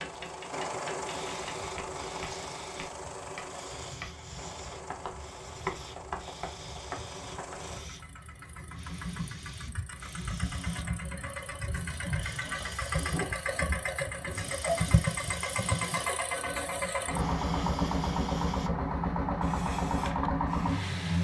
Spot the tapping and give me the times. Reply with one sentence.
You can hear the tapping from 0.0 to 8.1 s.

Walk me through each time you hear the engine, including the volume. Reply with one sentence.
You can hear the engine from 0.0 to 21.1 s, getting quieter then louder.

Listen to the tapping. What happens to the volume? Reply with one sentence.
The volume of the tapping goes up, then down.